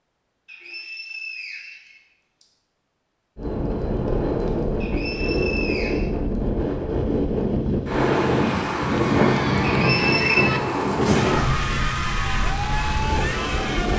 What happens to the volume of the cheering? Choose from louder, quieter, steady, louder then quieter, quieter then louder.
steady.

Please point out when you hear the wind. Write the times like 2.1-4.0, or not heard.
3.4-13.9.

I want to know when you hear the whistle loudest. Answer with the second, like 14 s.
10 s.